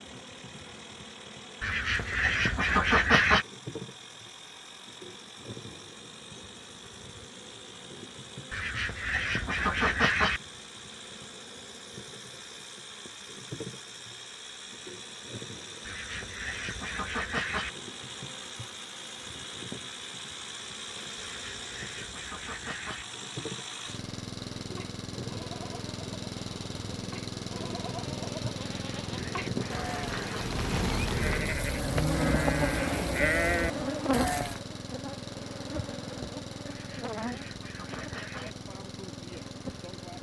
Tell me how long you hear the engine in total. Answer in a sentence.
The engine can be heard for 40 seconds in total.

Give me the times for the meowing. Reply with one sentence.
The meowing can't be heard in this clip.